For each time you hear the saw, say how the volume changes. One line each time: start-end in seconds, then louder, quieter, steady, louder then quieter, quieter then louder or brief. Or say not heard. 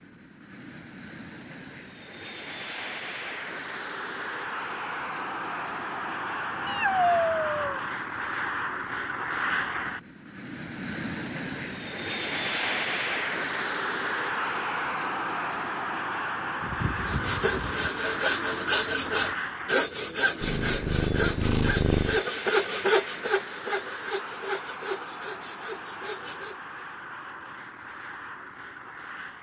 17.0-26.6 quieter.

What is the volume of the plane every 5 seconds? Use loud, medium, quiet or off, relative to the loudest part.
medium, loud, loud, loud, medium, medium.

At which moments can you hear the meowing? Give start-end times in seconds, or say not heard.
6.7-7.8, 16.6-17.9, 20.4-22.2.